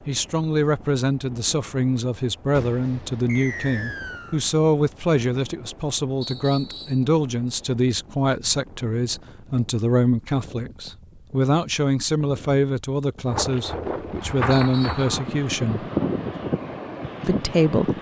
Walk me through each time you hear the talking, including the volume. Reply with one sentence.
The talking can be heard from 0.1 to 15.8 s, at a steady volume; and briefly from 17.2 to 17.9 s.